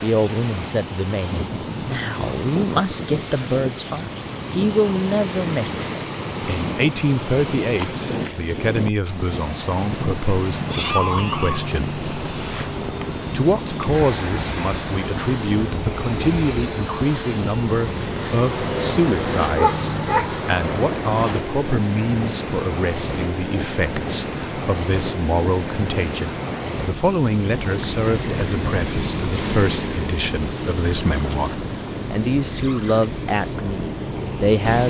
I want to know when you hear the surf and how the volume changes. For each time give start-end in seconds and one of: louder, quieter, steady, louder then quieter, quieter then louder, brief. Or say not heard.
0.0-34.8 steady.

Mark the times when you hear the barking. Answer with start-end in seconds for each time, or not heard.
19.6-20.4.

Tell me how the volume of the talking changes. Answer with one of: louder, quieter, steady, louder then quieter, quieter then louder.
steady.